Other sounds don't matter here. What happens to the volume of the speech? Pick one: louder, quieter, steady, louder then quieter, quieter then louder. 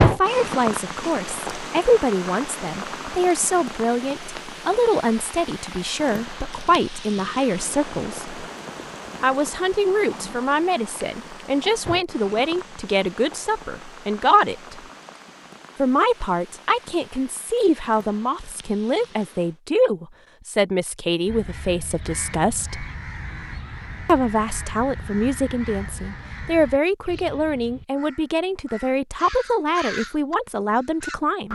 steady.